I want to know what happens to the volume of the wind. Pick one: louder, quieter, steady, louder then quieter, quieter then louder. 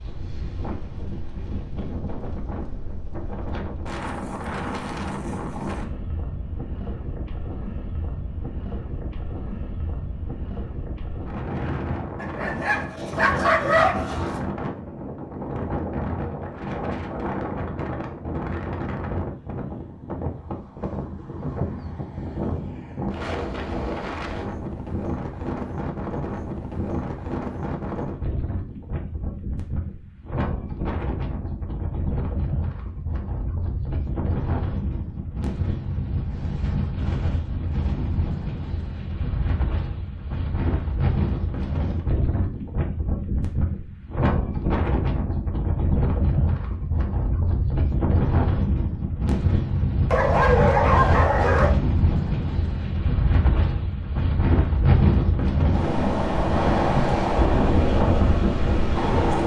louder.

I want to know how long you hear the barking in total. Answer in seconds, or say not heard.
4 s.